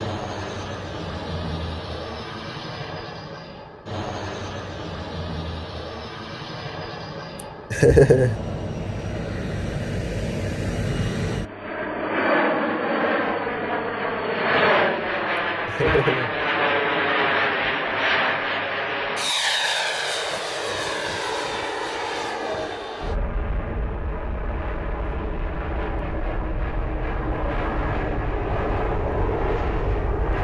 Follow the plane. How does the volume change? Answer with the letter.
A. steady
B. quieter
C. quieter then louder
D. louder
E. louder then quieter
E.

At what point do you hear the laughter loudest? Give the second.
8 s.